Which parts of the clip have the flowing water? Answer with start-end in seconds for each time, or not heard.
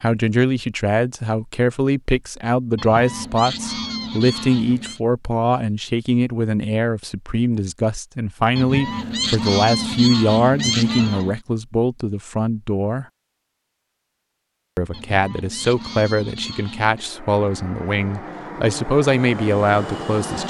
not heard.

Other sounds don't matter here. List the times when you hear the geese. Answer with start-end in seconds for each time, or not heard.
2.8-5.0, 8.6-11.4, 14.9-17.1.